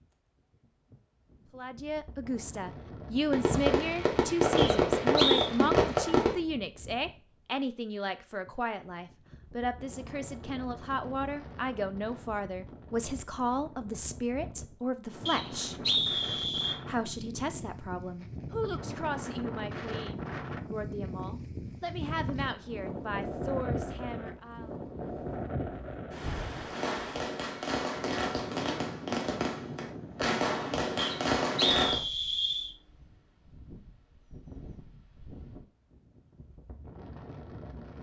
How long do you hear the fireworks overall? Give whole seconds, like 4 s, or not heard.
8 s.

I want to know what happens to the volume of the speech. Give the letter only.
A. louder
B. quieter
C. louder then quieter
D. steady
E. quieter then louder
B.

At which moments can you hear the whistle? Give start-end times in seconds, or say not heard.
4.5-5.5, 15.2-16.8, 30.9-32.7.